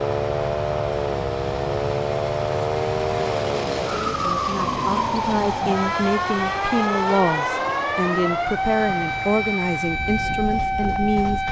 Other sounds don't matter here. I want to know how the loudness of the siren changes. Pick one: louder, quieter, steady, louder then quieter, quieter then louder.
steady.